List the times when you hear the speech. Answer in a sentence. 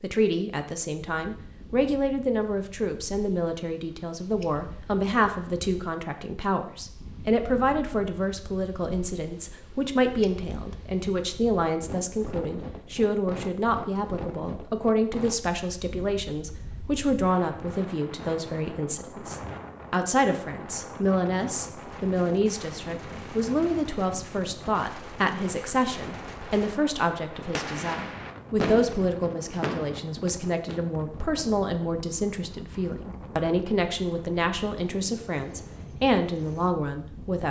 You can hear the speech from 0.0 to 37.4 s.